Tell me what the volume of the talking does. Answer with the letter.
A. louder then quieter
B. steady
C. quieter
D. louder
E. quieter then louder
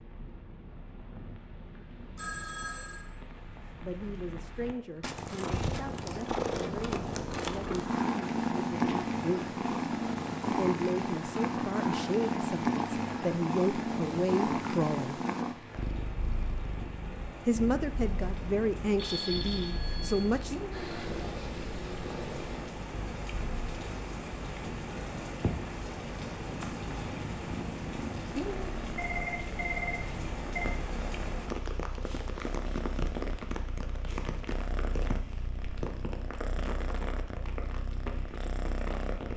D.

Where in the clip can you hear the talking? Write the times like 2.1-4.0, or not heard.
3.6-9.6, 10.5-15.2, 17.4-20.6.